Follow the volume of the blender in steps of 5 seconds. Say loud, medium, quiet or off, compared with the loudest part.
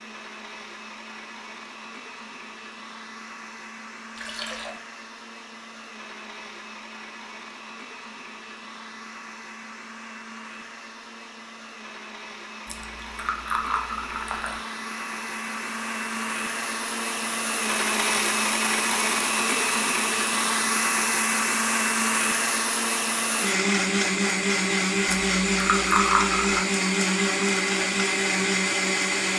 quiet, quiet, quiet, loud, loud, loud.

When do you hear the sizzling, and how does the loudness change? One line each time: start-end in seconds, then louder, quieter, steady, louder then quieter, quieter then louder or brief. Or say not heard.
not heard.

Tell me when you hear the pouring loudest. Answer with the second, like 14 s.
26 s.